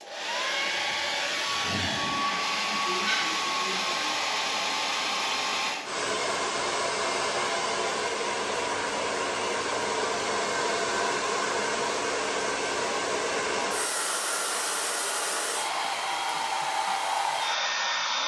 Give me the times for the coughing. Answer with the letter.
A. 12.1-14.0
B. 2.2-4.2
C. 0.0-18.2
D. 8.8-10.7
B.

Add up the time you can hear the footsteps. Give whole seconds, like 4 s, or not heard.
not heard.